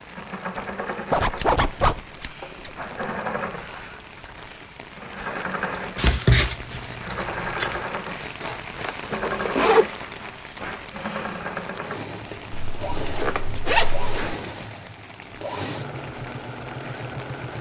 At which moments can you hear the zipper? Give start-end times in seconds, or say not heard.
1.1-2.0, 8.4-9.8, 12.5-14.2.